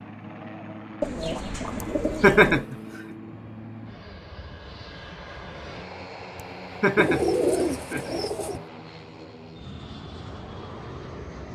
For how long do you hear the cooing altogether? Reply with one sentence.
The cooing can be heard for 3 seconds in total.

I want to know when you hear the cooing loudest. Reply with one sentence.
The loudest moment of the cooing is at 7 seconds.